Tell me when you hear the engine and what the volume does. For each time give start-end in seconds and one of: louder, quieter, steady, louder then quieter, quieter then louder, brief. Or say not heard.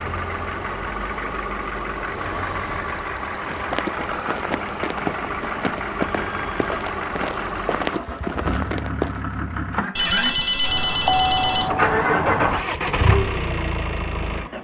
0.0-14.5 louder.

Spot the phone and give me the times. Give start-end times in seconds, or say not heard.
2.1-2.9, 5.9-6.9, 9.9-11.8.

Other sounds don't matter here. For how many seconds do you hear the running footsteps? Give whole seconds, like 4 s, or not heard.
6 s.